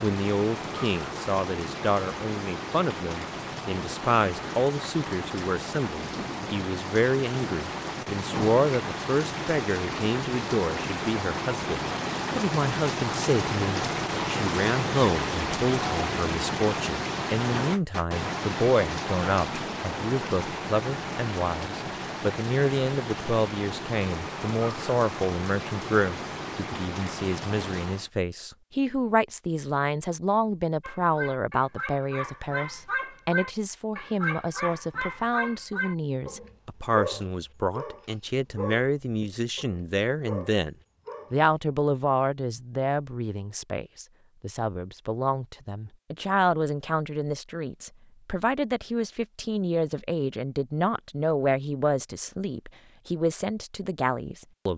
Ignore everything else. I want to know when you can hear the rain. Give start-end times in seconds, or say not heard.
0.0-28.1.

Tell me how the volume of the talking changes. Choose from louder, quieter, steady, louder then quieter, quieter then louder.
steady.